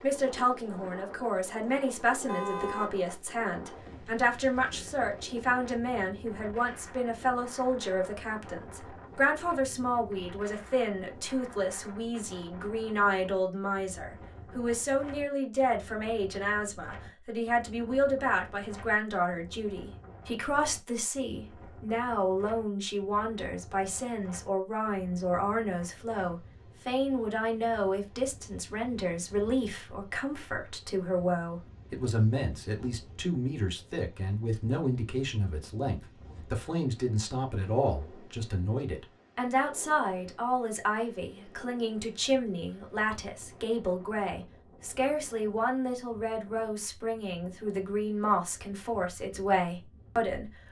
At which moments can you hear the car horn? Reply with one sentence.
The car horn can be heard from 2.2 to 3.0 s.